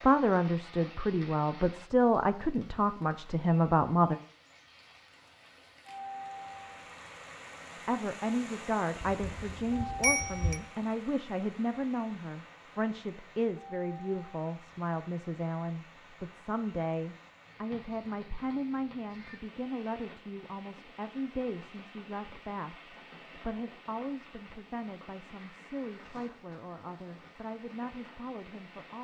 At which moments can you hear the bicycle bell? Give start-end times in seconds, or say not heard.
9.0-10.6.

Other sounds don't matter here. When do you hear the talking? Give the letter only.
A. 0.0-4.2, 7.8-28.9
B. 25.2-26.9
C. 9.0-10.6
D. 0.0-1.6
A.